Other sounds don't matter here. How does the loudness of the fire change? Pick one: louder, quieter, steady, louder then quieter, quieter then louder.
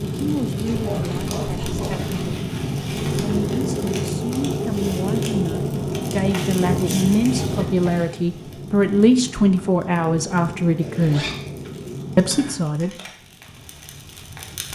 quieter.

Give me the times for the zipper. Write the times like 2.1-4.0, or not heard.
0.7-2.5, 10.8-11.7.